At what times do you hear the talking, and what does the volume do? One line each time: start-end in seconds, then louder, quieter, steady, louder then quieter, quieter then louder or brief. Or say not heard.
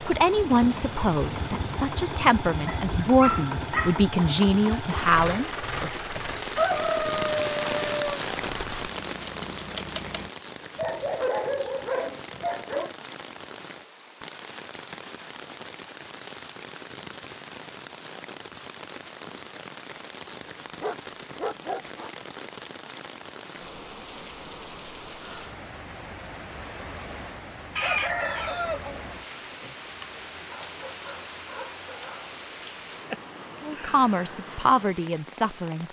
0.0-6.0 steady
33.6-35.8 brief.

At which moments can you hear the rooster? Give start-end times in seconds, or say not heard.
6.5-8.2, 27.8-29.8.